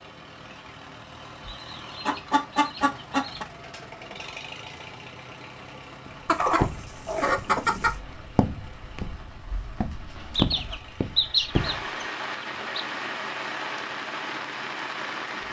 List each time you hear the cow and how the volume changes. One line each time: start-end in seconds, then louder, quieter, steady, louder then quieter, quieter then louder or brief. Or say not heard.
not heard.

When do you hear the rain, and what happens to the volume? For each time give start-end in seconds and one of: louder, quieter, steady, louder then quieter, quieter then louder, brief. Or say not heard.
0.0-15.4 louder.